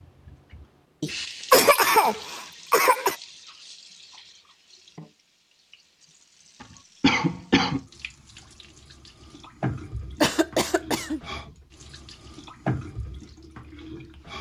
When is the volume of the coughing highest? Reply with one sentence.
The loudest moment of the coughing is at 2 seconds.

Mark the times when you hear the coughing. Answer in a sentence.
The coughing can be heard from 1.0 to 3.1 s, from 6.6 to 7.8 s and from 10.2 to 11.2 s.